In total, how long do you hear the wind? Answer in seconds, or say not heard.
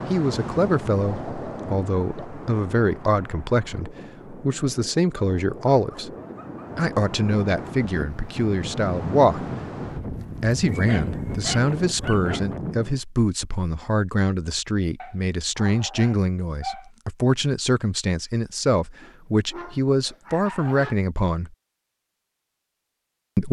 13 s.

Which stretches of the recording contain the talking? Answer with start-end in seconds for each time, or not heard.
0.1-6.1, 6.8-9.5, 10.4-21.5.